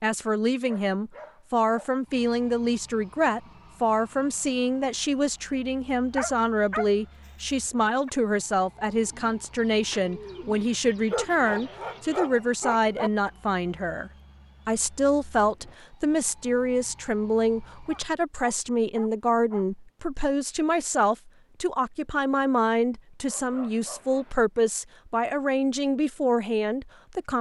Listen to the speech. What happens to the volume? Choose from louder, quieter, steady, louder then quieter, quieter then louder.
steady.